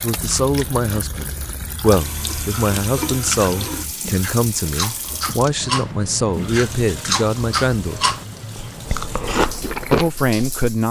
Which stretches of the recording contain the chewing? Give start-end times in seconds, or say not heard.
0.0-10.8.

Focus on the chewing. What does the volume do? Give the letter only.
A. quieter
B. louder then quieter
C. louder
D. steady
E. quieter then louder
C.